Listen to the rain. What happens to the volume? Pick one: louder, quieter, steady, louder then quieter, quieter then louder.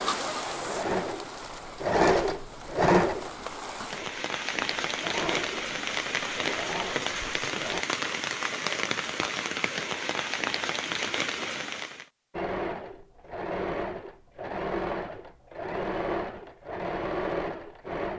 louder.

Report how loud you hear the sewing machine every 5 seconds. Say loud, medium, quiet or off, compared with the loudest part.
loud, medium, medium, medium.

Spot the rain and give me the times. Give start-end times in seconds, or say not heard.
0.0-12.1.